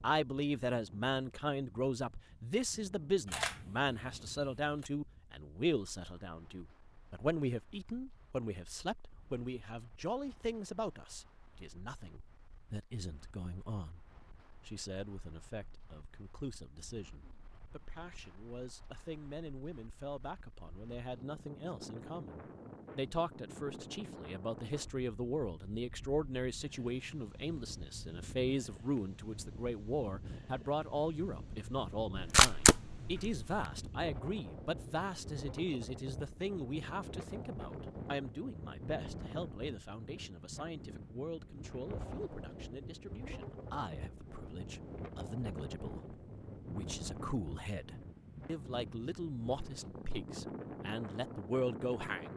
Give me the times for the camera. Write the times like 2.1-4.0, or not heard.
3.2-4.8, 32.1-33.6.